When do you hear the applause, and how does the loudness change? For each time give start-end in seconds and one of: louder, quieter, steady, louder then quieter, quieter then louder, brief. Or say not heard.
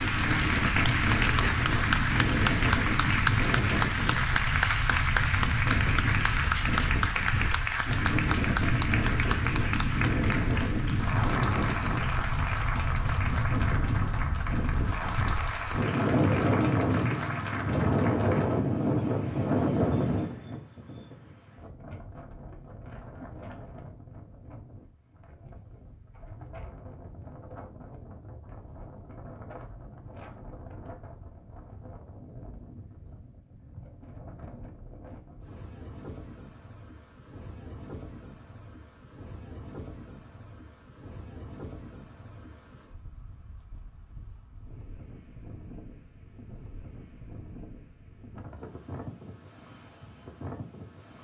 0.0-18.5 quieter.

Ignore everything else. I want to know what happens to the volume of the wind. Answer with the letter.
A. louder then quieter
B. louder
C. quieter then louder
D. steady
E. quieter
E.